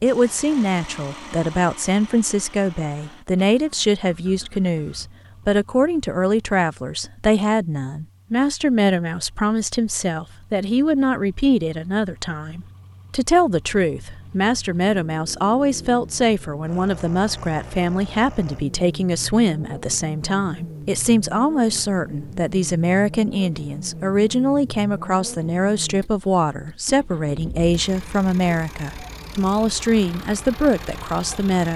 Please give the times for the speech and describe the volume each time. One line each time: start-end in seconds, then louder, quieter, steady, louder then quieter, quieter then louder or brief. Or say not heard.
0.0-31.7 steady.